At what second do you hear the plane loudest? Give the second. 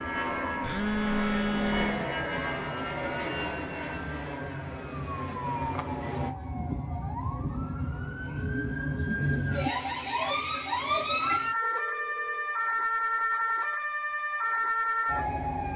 2 s.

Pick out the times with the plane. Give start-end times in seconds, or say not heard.
0.0-6.3.